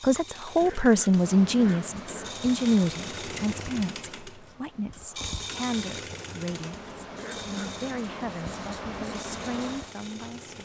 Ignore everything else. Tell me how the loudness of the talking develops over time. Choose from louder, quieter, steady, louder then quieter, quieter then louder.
quieter.